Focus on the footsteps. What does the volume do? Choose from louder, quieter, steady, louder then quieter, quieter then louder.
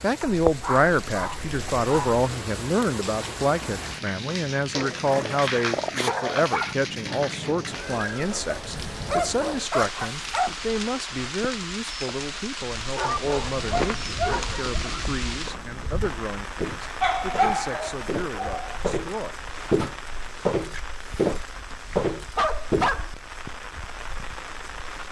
louder.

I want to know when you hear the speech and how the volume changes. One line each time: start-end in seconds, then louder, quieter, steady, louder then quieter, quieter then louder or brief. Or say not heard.
0.0-19.4 quieter.